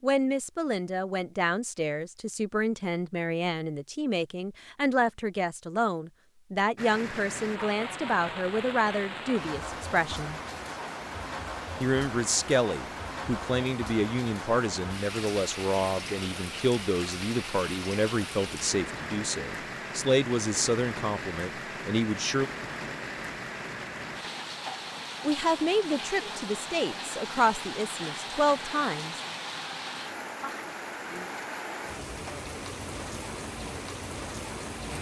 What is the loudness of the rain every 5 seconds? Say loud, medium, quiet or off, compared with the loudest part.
off, loud, loud, loud, loud, loud, loud.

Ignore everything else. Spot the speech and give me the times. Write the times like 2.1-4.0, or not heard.
0.0-10.4, 11.8-22.5, 25.2-29.2.